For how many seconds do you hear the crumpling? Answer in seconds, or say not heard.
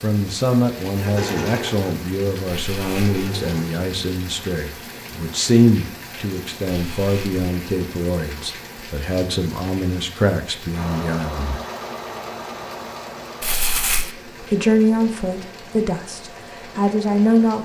2 s.